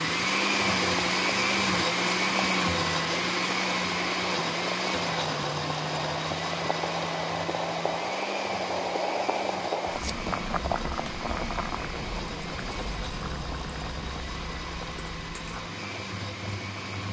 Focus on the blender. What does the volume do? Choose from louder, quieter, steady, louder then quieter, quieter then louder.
quieter.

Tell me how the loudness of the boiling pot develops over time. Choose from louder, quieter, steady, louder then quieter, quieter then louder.
louder then quieter.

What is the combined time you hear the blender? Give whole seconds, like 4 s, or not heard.
17 s.